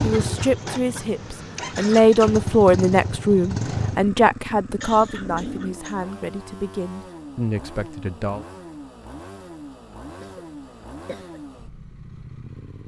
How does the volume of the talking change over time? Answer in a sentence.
The volume of the talking goes up, then down.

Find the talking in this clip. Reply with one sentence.
You can hear the talking from 0.0 to 8.4 s.